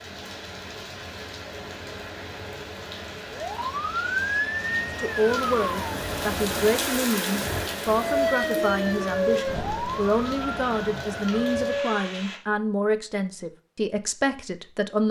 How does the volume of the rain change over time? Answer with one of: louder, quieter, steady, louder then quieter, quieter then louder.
louder then quieter.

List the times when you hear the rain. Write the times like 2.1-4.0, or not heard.
0.0-12.4.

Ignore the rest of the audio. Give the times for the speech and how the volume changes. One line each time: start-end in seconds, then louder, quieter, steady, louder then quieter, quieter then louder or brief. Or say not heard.
5.0-15.0 steady.